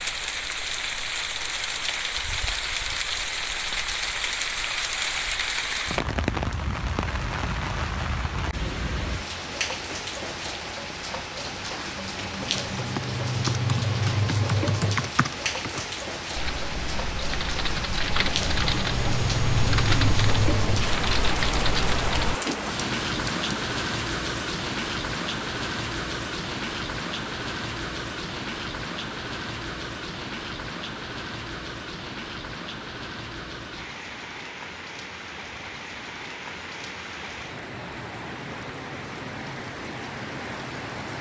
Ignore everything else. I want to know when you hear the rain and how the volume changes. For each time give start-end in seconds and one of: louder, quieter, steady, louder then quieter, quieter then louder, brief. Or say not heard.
0.0-41.1 quieter.